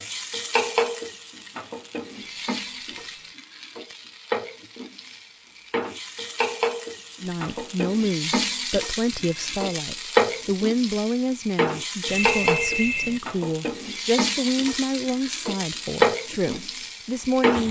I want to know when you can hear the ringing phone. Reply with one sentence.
The ringing phone can be heard from 2.2 to 3.4 s, from 9.2 to 9.8 s and from 12.1 to 13.2 s.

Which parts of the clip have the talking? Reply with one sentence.
You can hear the talking from 7.2 to 17.6 s.